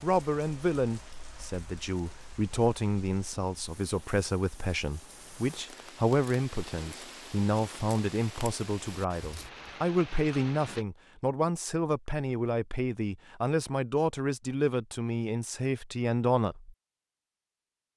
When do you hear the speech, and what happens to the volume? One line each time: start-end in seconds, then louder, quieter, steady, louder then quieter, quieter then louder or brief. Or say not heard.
0.0-16.8 steady.